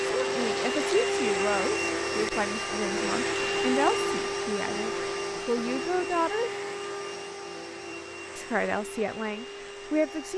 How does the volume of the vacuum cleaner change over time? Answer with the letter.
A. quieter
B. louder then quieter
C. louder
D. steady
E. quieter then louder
A.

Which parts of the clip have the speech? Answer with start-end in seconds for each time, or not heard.
0.2-6.5, 8.3-10.3.